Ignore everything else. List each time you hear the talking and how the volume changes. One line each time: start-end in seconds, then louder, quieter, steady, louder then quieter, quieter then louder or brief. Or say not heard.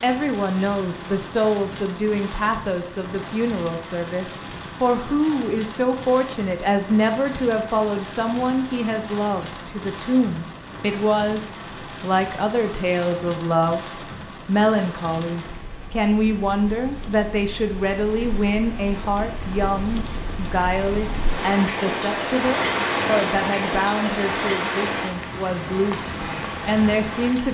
0.0-27.4 steady.